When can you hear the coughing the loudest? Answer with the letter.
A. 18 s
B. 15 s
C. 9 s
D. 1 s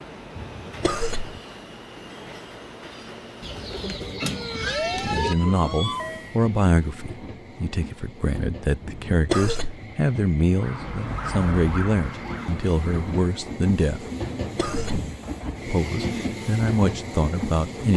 C.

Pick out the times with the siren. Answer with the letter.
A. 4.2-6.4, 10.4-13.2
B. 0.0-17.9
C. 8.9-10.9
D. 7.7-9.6
A.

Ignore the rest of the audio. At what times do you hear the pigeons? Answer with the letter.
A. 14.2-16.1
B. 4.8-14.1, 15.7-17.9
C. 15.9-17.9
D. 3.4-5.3
D.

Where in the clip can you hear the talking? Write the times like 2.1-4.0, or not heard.
4.8-14.1, 15.7-17.9.